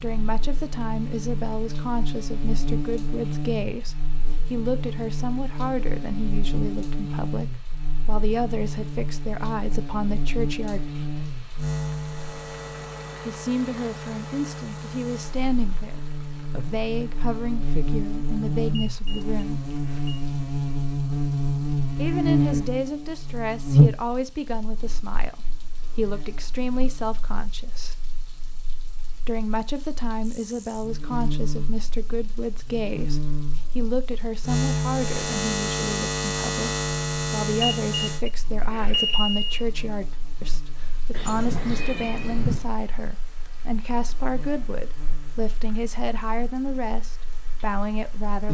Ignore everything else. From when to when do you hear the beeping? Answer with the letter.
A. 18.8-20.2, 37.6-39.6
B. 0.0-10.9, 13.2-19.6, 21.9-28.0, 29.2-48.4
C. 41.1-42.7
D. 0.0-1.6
A.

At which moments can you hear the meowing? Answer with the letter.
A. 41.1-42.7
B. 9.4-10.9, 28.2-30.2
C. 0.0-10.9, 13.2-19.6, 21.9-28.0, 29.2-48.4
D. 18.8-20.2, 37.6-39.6
A.